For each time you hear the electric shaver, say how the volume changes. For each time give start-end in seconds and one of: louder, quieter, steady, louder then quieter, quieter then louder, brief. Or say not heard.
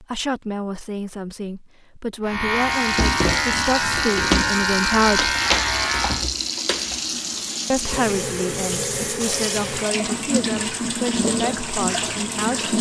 2.2-6.2 steady.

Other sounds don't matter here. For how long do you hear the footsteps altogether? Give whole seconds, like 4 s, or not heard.
not heard.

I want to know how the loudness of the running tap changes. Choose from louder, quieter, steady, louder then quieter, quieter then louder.
steady.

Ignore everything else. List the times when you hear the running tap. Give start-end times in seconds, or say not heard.
2.5-12.7.